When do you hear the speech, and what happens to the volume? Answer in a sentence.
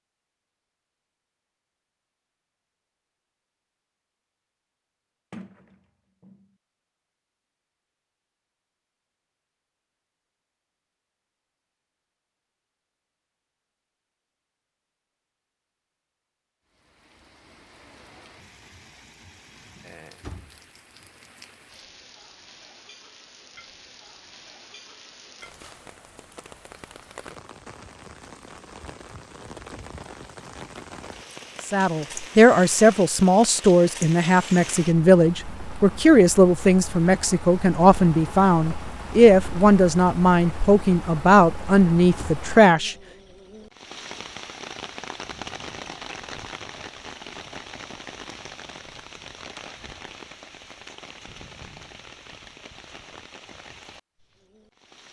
The speech can be heard from 31.6 to 43.0 s, at a steady volume.